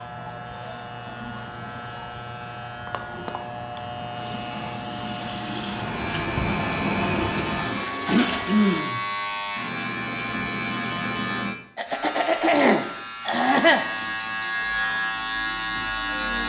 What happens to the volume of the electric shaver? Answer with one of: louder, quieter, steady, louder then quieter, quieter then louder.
louder.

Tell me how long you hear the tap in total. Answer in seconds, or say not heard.
5 s.